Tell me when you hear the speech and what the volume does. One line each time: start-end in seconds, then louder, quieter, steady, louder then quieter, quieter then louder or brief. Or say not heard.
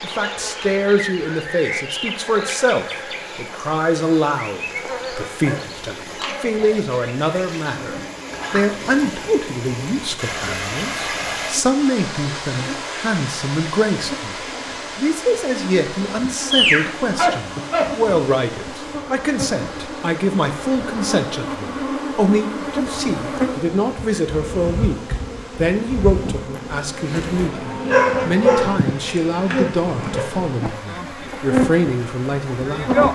0.0-33.0 steady.